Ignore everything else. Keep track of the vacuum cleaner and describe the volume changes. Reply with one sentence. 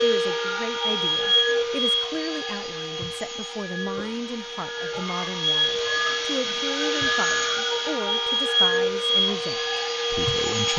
The volume of the vacuum cleaner goes down, then up.